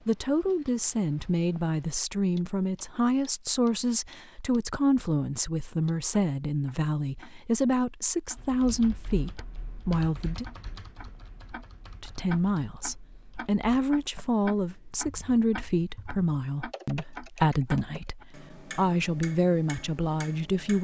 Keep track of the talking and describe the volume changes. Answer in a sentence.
The volume of the talking stays about the same.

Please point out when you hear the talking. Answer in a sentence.
The talking can be heard from 0.1 to 10.4 s and from 12.0 to 20.7 s.